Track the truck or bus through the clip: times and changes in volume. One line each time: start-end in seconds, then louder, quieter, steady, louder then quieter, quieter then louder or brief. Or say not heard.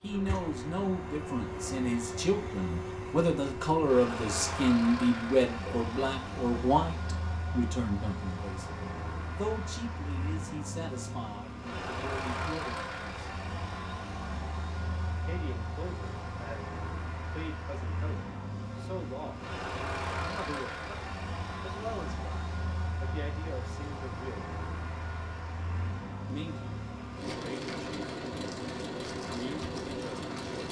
0.0-30.6 steady.